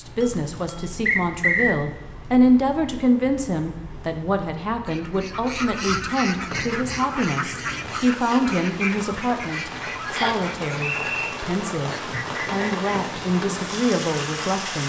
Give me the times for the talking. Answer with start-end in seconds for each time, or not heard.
0.0-14.8.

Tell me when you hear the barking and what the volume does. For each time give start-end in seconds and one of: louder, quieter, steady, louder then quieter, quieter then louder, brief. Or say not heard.
not heard.